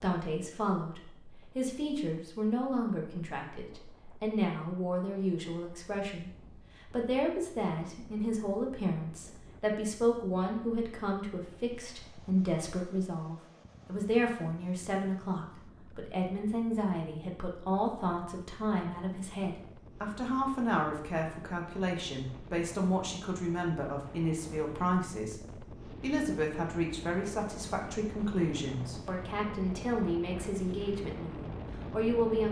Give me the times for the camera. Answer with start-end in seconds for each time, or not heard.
not heard.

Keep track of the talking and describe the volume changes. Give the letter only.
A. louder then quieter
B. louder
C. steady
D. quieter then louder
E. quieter
C.